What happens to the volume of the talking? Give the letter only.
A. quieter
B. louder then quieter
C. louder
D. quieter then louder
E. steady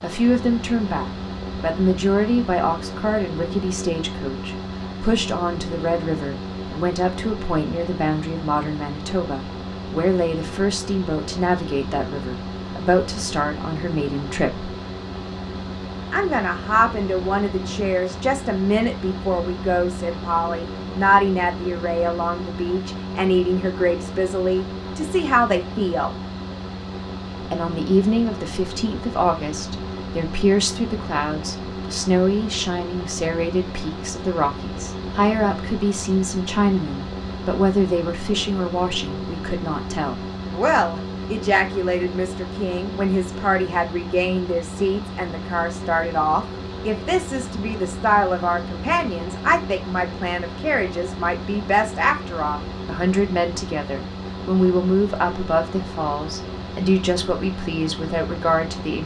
E.